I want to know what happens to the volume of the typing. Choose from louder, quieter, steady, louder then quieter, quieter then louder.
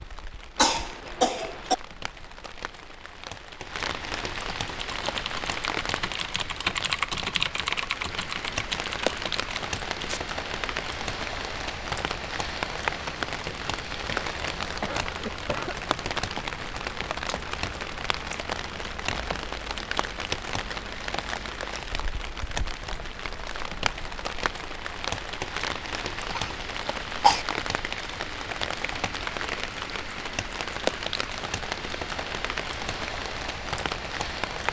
louder then quieter.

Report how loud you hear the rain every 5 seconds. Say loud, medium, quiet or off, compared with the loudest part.
medium, loud, loud, loud, loud, loud, loud.